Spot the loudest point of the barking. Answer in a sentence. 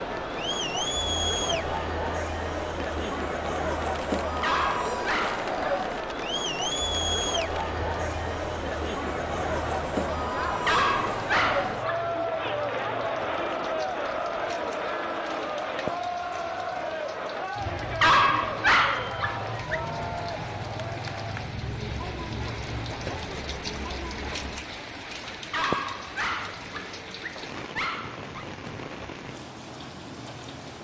The loudest moment of the barking is at 18 seconds.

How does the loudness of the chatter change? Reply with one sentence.
The loudness of the chatter goes down.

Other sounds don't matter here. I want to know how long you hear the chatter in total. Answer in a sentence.
You can hear the chatter for 25 seconds altogether.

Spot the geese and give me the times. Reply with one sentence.
The geese can't be heard in this clip.